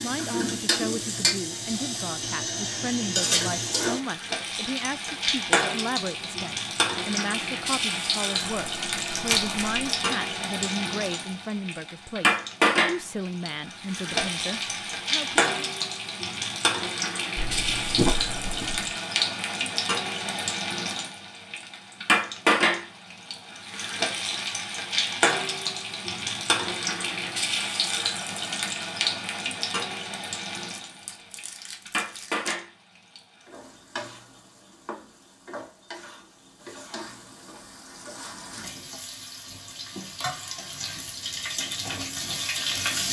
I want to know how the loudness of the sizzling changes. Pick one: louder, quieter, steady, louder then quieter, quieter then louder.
quieter.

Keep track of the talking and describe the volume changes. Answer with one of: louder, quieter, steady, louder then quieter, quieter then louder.
steady.